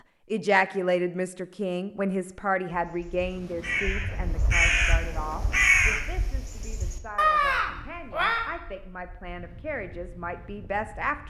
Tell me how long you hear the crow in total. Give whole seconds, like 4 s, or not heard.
6 s.